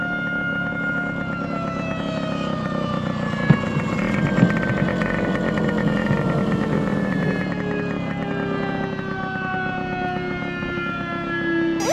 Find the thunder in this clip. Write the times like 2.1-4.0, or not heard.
3.4-7.5.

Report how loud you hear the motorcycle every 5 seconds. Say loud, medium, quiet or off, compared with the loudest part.
loud, loud, medium.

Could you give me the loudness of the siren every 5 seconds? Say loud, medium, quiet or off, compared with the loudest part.
medium, medium, loud.